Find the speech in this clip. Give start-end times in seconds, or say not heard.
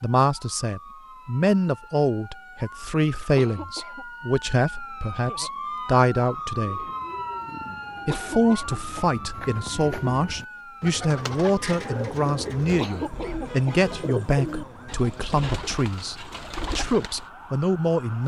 0.0-6.8, 8.1-18.2.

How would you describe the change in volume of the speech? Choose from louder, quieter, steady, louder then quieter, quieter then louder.
steady.